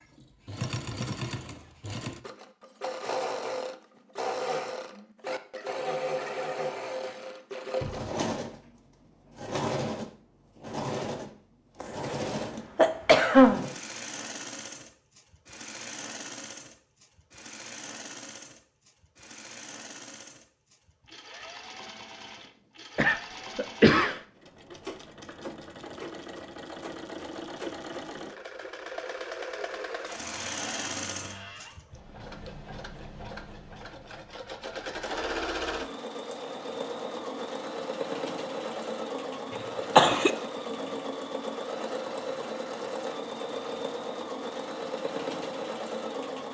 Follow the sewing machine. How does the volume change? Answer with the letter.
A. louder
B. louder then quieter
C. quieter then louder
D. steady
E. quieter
C.